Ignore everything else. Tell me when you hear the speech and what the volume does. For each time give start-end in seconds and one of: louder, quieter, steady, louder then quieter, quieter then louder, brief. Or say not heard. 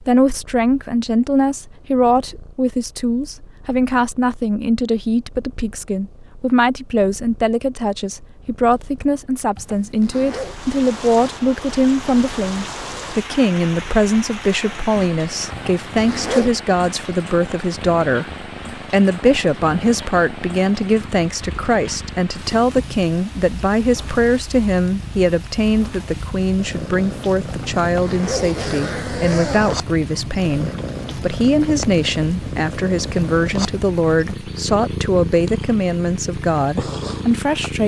0.0-37.8 steady.